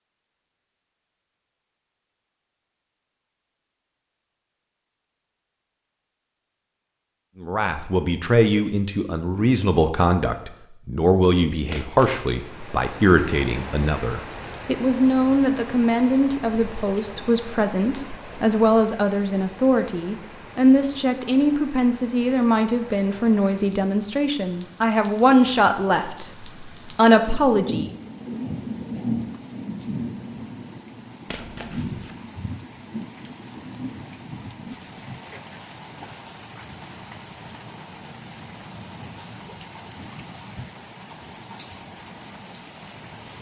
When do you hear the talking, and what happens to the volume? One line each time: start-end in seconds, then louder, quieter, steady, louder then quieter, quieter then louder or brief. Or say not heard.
7.4-27.9 steady.